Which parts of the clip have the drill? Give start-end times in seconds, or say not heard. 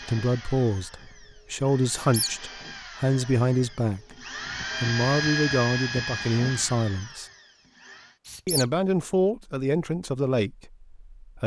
0.0-8.2.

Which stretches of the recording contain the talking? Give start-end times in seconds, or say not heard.
0.0-4.0, 4.8-7.2, 8.4-11.4.